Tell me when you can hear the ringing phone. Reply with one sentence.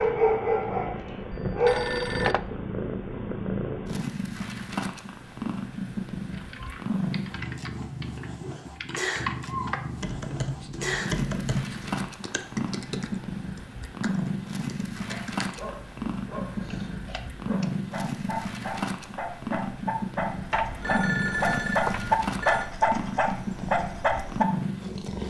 You can hear the ringing phone from 1.3 to 2.4 s and from 20.5 to 22.7 s.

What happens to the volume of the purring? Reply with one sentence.
The loudness of the purring stays about the same.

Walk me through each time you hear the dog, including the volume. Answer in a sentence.
The dog can be heard briefly from 0.0 to 1.9 s; and from 15.1 to 24.4 s, getting louder.